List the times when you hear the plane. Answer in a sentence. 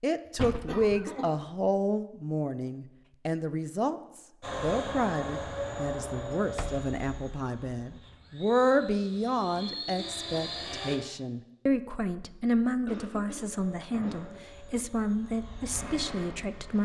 You can hear the plane from 4.4 to 11.0 s and from 13.5 to 16.8 s.